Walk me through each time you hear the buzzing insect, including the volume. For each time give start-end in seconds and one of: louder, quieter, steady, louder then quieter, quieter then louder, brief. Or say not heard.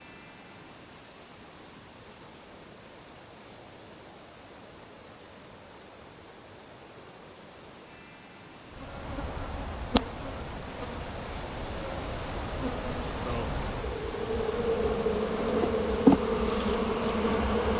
8.7-17.7 quieter then louder.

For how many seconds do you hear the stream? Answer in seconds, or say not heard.
18 s.